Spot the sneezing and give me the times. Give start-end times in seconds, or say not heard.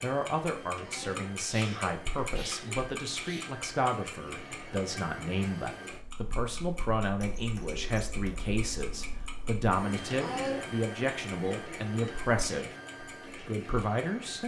0.8-3.5, 10.2-10.7.